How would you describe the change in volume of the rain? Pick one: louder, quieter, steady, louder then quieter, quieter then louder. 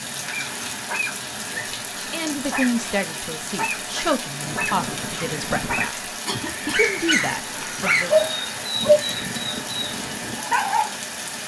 steady.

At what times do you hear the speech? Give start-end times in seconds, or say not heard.
1.5-6.0, 6.7-8.2.